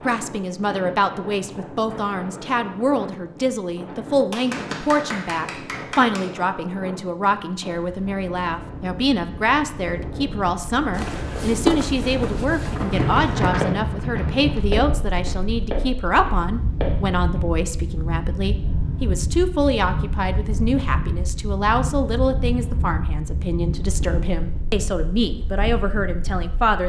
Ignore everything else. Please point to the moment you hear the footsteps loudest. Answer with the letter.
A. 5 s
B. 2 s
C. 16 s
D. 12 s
D.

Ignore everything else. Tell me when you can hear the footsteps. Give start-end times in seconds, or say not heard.
10.9-17.4.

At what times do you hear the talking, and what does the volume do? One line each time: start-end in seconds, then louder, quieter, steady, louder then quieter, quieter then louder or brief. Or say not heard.
0.1-26.8 steady.